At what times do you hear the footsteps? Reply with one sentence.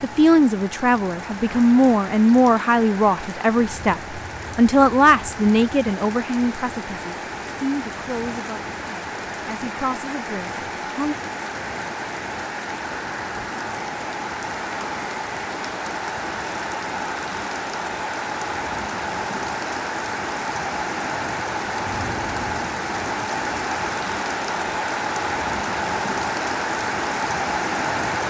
The footsteps can't be heard in this clip.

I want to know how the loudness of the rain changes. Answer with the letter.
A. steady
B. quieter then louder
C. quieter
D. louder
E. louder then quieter
D.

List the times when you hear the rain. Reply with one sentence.
The rain can be heard from 0.0 to 28.2 s.